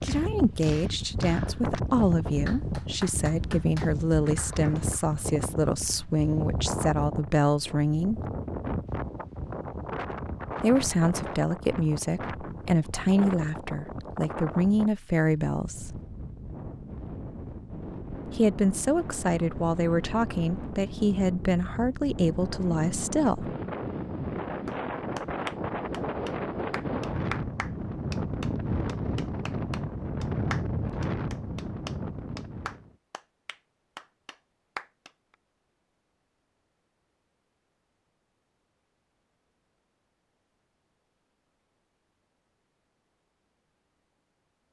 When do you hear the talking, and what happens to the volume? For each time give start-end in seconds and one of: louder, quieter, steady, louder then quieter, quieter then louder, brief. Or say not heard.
0.0-8.2 steady
10.6-16.0 steady
18.2-23.5 steady.